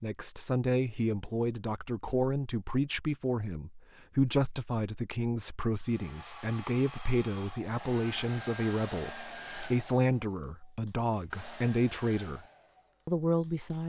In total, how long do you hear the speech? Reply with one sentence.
The speech can be heard for 13 seconds in total.